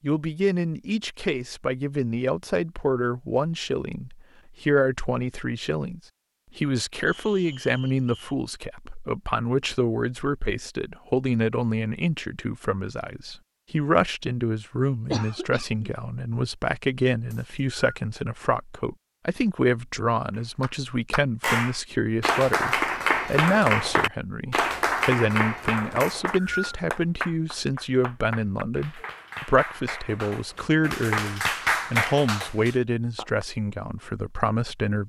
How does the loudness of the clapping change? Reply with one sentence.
The volume of the clapping goes down, then up.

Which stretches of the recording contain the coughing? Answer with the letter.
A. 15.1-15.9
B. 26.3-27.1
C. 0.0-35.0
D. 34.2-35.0
A.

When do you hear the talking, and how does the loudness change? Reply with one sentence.
You can hear the talking from 0.0 to 35.0 s, at a steady volume.